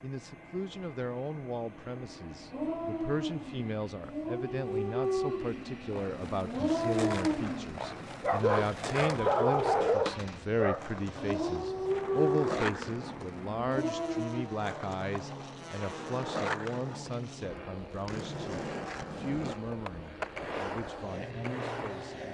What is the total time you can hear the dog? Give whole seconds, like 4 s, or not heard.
12 s.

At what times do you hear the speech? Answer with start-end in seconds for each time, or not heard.
0.0-22.2.